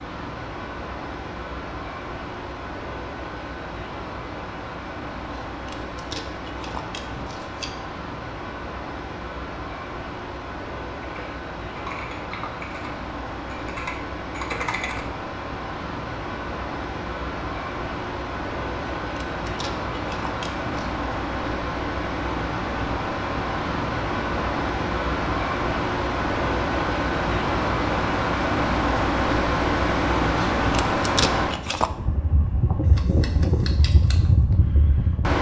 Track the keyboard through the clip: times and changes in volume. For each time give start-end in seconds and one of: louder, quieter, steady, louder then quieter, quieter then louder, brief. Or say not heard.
11.0-15.1 quieter then louder.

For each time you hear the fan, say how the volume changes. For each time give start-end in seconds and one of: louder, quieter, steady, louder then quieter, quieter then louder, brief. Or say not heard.
0.0-35.3 louder.